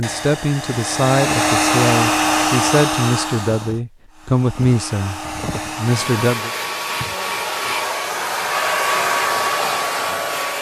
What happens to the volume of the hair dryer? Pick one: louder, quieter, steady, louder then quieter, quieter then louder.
quieter then louder.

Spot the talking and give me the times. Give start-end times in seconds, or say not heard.
0.0-6.5.